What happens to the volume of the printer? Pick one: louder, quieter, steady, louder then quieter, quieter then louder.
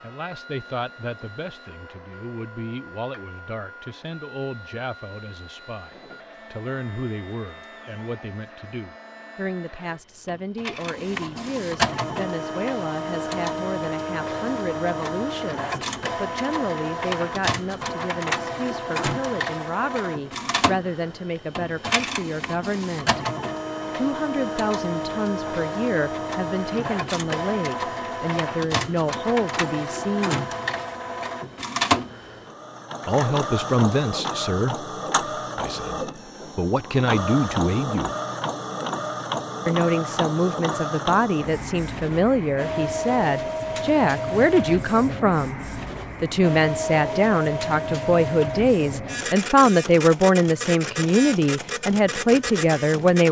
louder.